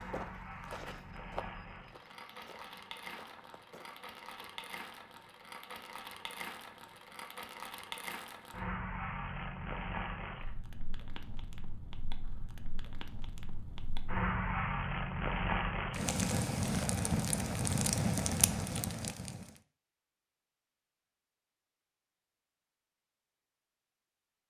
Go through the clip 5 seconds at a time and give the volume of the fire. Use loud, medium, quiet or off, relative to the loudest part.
quiet, medium, medium, loud, off.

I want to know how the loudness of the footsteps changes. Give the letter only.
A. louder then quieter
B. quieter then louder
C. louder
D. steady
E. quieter
E.